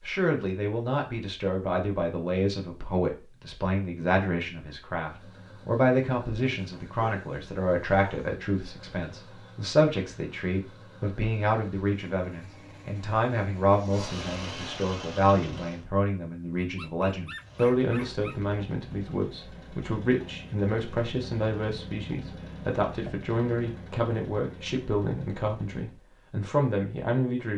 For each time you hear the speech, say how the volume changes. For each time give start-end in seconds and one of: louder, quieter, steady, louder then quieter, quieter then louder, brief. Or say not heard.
0.0-27.5 steady.